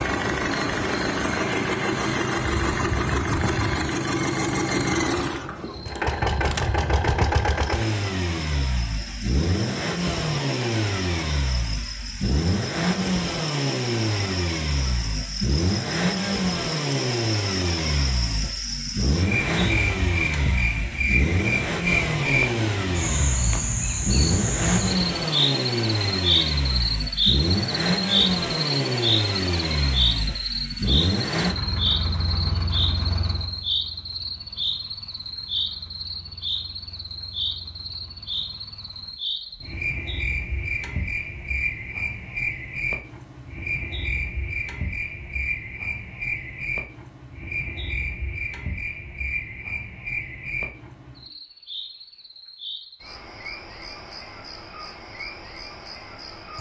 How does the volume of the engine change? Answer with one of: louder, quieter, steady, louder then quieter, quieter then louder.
quieter.